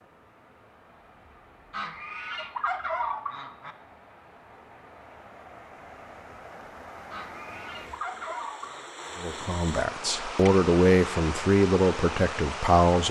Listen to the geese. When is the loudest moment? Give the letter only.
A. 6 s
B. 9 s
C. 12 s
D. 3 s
D.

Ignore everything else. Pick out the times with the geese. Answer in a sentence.
The geese can be heard from 1.7 to 3.8 s and from 7.1 to 9.1 s.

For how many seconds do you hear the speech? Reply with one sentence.
You can hear the speech for 4 seconds altogether.